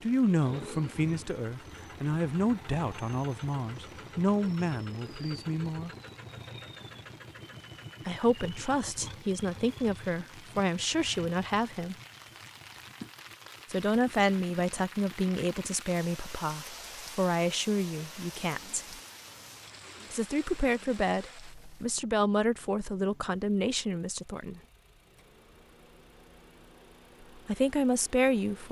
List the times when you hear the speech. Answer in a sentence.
You can hear the speech from 0.0 to 5.9 s, from 8.1 to 11.9 s, from 13.7 to 18.9 s, from 20.1 to 24.6 s and from 27.4 to 28.6 s.